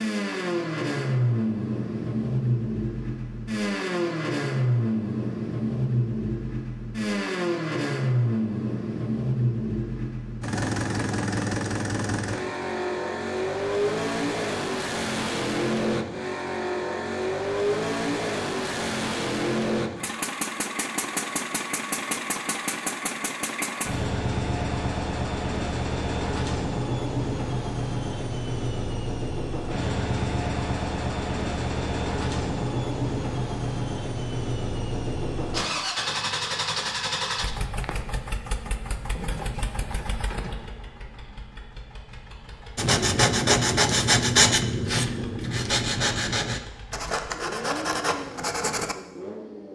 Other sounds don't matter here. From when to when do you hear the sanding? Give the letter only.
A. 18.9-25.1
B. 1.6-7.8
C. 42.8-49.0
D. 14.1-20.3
C.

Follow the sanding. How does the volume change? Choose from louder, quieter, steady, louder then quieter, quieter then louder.
quieter.